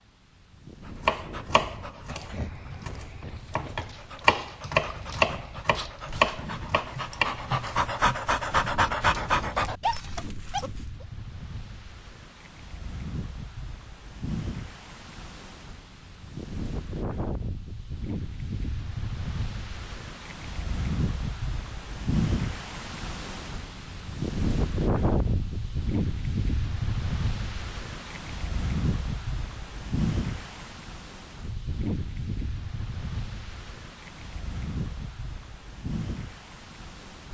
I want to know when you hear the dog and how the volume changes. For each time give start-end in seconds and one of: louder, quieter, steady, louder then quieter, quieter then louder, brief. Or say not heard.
0.8-11.1 louder.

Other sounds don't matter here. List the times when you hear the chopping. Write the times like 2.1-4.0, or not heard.
1.1-7.5.